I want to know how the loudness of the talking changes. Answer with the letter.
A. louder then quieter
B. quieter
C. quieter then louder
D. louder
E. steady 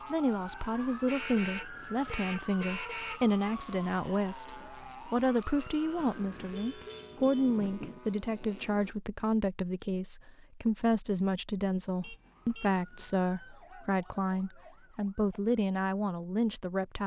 E.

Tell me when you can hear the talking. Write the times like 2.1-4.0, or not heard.
0.1-17.0.